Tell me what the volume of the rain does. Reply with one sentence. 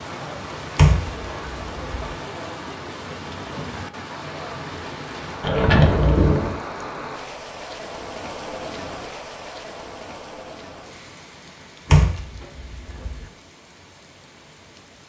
The volume of the rain goes down.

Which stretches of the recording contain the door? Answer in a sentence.
The door can be heard from 0.8 to 1.9 s, from 5.4 to 6.6 s and from 11.8 to 13.2 s.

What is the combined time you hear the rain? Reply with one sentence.
You can hear the rain for 15 seconds altogether.